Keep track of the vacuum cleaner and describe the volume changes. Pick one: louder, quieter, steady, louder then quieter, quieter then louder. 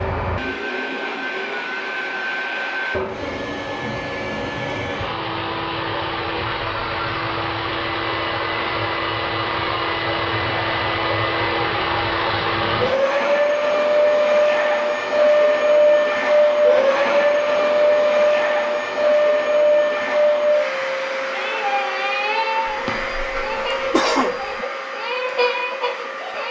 louder then quieter.